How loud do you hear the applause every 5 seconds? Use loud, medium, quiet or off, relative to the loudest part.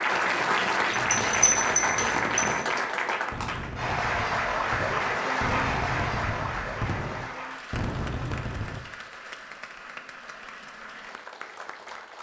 loud, medium, quiet.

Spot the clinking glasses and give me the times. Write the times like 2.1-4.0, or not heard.
0.9-2.5.